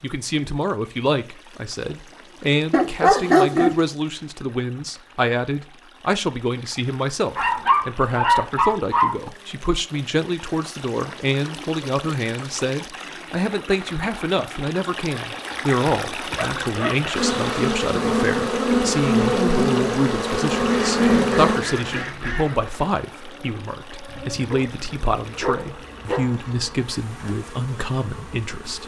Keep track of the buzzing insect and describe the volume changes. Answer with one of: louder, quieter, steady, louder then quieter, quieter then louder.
quieter.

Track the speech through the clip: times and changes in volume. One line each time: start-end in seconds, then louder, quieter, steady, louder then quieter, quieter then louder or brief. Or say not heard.
0.0-28.8 steady.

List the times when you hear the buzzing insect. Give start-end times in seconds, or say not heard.
17.1-28.8.